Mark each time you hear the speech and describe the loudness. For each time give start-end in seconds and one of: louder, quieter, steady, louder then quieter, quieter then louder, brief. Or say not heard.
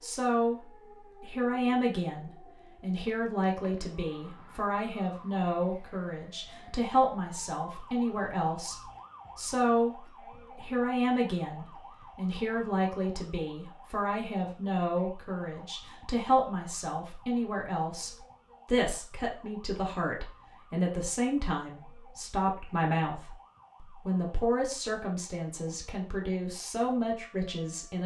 0.0-28.0 steady.